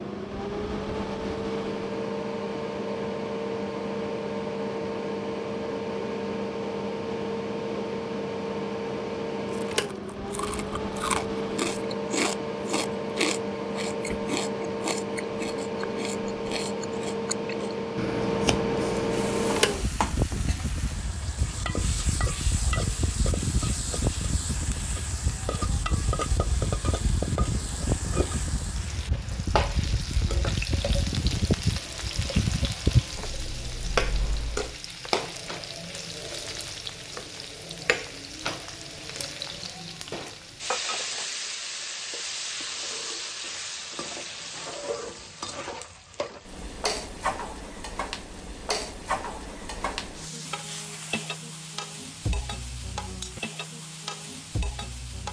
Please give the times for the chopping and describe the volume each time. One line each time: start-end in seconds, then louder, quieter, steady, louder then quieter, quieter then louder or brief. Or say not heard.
not heard.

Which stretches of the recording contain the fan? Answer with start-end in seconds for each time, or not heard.
0.0-34.8.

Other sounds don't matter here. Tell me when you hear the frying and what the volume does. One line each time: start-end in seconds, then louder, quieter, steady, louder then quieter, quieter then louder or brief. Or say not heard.
19.1-55.2 steady.